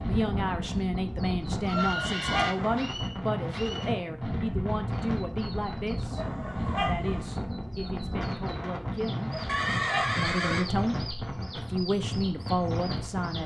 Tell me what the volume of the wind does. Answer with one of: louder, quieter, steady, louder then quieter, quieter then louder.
steady.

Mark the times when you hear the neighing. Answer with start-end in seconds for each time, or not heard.
1.6-2.5, 9.4-10.7.